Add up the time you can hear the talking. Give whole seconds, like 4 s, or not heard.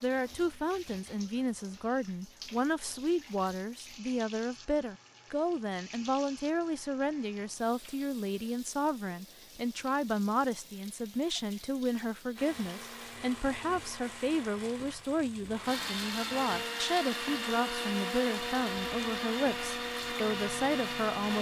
21 s.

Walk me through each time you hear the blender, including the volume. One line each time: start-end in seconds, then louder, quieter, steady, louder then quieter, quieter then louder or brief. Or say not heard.
12.3-21.3 louder.